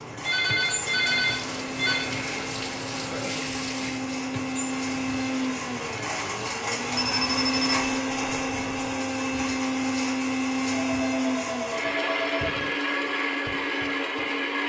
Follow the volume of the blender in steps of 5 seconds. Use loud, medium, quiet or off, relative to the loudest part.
medium, loud, loud.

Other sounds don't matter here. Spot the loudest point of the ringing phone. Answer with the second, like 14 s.
1 s.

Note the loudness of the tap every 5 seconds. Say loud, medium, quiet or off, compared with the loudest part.
loud, medium, off.